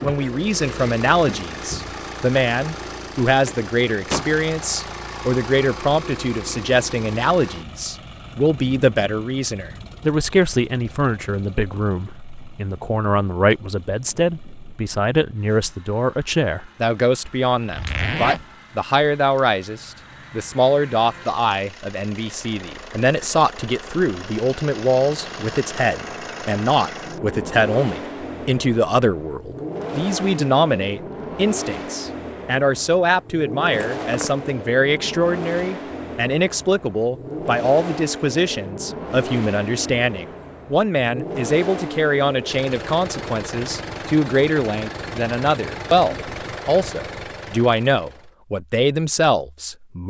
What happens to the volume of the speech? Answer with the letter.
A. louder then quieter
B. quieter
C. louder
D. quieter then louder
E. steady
E.